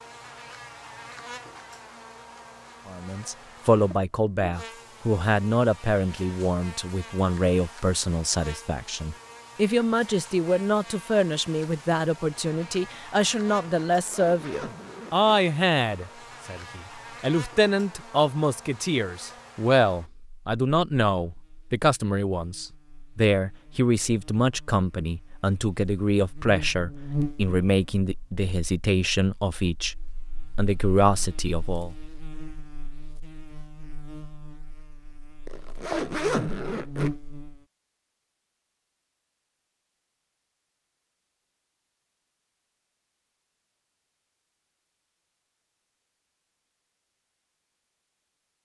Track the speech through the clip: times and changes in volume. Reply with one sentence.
The speech can be heard from 2.9 to 29.9 s, at a steady volume; and briefly from 30.6 to 31.9 s.